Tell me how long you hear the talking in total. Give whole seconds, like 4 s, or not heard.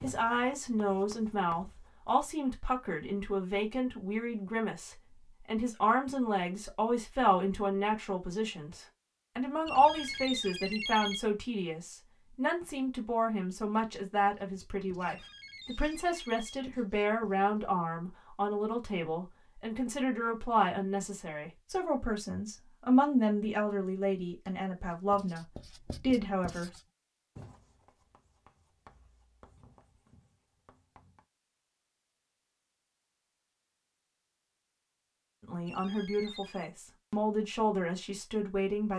30 s.